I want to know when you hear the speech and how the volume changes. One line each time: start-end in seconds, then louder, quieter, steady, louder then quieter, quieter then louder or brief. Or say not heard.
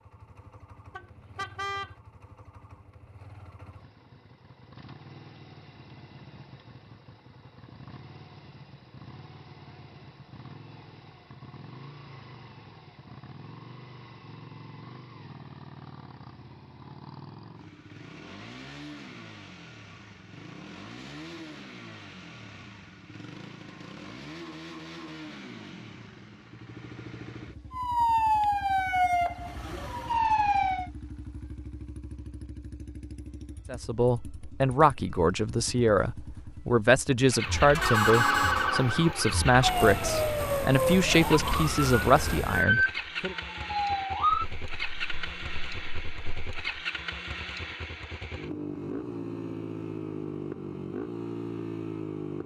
33.7-43.4 steady.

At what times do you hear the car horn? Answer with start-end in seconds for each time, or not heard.
0.9-1.9, 37.8-38.6.